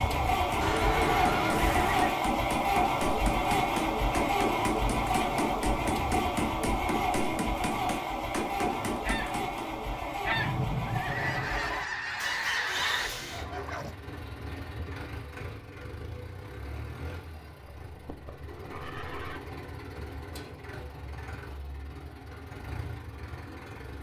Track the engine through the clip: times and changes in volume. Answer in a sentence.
You can hear the engine from 0.0 to 23.9 s, getting quieter.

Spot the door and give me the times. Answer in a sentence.
The door can't be heard in this clip.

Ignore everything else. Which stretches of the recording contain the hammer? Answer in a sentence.
You can hear the hammer from 0.1 to 9.7 s.